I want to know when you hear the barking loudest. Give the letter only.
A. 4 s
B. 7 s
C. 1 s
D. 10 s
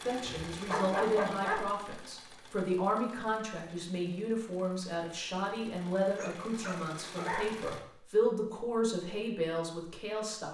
C.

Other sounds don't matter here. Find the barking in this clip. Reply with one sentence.
The barking can be heard from 0.2 to 2.1 s and from 6.2 to 7.5 s.